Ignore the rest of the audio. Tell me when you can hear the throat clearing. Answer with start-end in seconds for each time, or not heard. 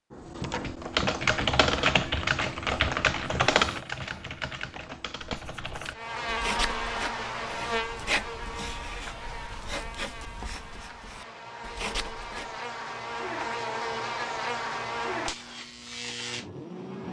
not heard.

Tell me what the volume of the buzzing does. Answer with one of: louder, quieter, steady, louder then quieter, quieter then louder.
quieter then louder.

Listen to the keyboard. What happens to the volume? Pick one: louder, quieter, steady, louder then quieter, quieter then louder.
quieter.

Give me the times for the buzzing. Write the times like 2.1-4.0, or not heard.
5.9-17.0.